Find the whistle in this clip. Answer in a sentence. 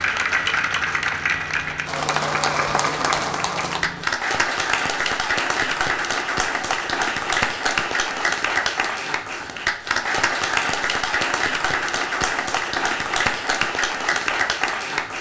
You can't hear the whistle here.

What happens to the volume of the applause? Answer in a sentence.
The loudness of the applause stays about the same.